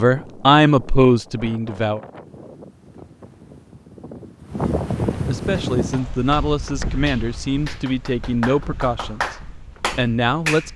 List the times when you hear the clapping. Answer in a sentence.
The clapping can be heard from 5.7 to 10.7 s.